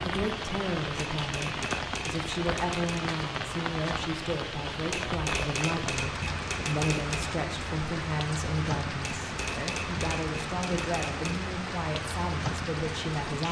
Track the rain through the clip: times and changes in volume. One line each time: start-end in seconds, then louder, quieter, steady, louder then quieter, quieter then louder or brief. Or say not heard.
0.0-13.4 steady.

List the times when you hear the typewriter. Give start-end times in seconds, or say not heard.
1.2-3.0, 4.9-7.3, 9.2-11.4.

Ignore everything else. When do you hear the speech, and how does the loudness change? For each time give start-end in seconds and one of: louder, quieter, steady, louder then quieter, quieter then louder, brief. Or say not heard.
0.0-13.4 steady.